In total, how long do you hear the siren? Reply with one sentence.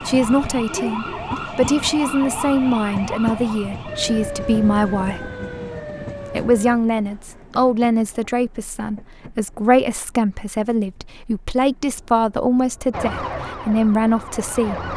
You can hear the siren for 9 seconds altogether.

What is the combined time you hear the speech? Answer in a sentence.
The speech can be heard for 14 seconds in total.